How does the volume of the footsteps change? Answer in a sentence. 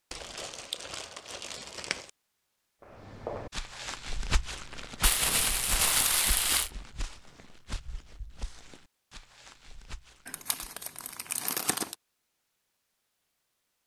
The loudness of the footsteps goes down.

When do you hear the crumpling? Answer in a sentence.
You can hear the crumpling from 0.1 to 2.1 s, from 5.0 to 6.7 s and from 10.2 to 11.9 s.